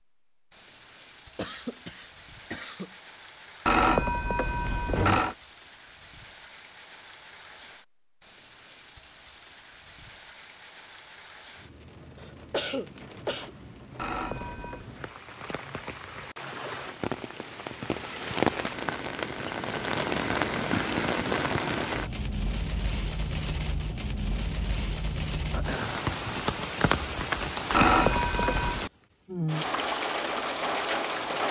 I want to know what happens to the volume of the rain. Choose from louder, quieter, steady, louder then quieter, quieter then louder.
louder.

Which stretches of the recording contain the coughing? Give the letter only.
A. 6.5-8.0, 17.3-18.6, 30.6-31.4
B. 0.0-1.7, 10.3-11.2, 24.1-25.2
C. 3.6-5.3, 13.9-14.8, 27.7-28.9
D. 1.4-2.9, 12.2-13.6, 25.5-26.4
D.